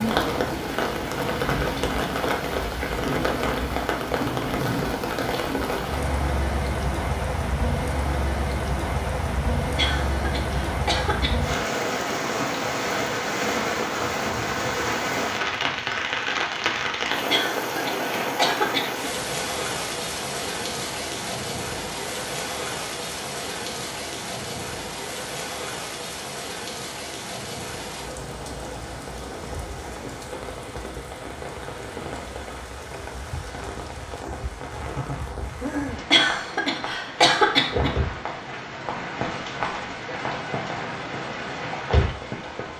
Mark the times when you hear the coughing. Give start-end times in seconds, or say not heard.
9.8-11.6, 17.2-19.1, 36.1-38.0.